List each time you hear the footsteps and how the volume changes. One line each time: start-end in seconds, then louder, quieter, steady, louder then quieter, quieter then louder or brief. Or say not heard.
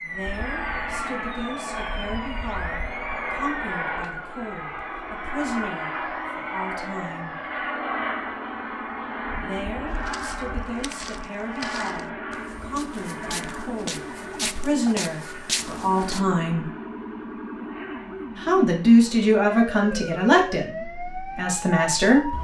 9.9-16.2 louder.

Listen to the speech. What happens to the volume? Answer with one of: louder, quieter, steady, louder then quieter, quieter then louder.
louder.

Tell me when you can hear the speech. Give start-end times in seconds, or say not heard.
0.0-7.3, 9.3-16.7, 18.4-22.3.